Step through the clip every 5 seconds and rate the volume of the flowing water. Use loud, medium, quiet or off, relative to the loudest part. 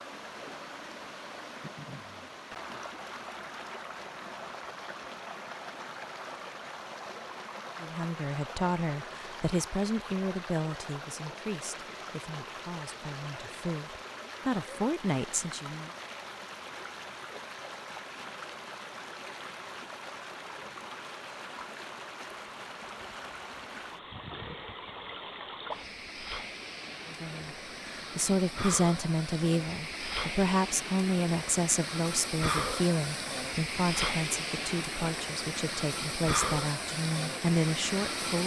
medium, medium, medium, medium, medium, medium, loud, loud.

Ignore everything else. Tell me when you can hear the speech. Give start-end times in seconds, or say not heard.
7.8-15.9, 27.1-38.4.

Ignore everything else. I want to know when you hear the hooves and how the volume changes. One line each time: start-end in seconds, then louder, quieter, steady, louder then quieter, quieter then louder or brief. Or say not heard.
not heard.